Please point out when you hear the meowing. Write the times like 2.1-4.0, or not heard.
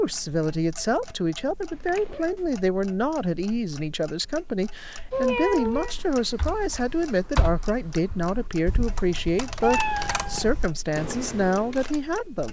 1.7-2.3, 5.1-6.0, 9.6-10.5.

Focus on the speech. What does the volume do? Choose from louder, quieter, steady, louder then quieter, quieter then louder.
steady.